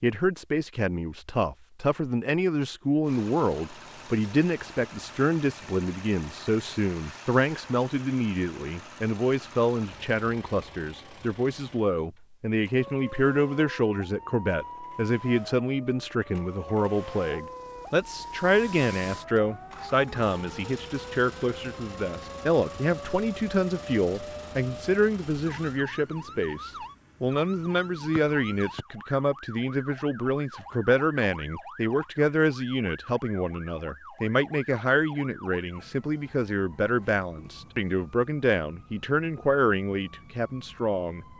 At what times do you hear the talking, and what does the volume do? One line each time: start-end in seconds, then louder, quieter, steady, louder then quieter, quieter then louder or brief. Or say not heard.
0.0-41.2 steady.